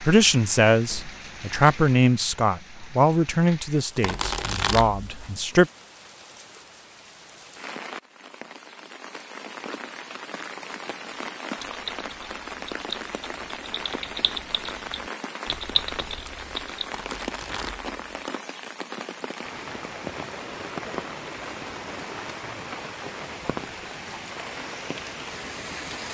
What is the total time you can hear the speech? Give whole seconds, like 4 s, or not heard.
6 s.